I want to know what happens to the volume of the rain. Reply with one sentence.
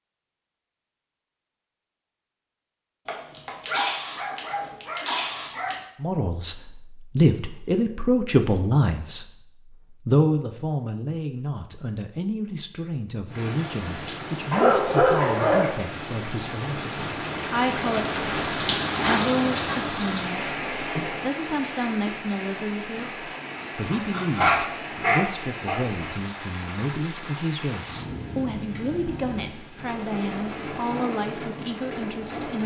The volume of the rain goes up, then down.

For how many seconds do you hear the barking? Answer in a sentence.
The barking can be heard for 6 seconds in total.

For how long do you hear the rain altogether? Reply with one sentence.
The rain can be heard for 19 seconds in total.